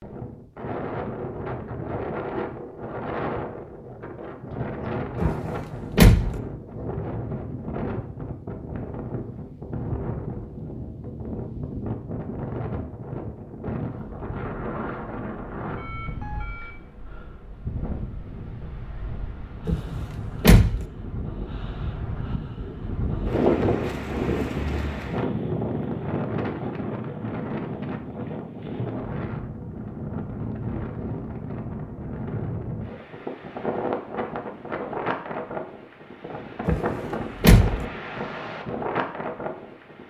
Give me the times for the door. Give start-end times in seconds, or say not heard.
5.2-6.4, 19.6-20.9, 36.6-37.9.